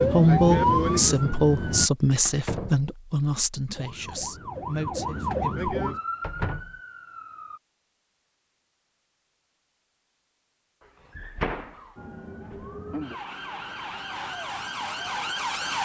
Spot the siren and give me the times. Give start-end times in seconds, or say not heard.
0.0-1.9, 3.7-7.6, 11.9-15.8.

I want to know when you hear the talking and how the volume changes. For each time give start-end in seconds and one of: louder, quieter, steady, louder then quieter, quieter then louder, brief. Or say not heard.
0.1-6.0 quieter.